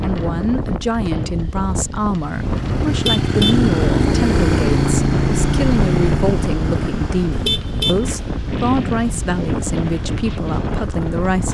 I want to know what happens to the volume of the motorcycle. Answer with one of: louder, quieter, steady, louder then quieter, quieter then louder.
quieter.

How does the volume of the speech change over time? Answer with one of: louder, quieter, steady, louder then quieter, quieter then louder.
steady.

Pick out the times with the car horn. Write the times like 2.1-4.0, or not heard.
2.9-3.6, 7.3-8.1.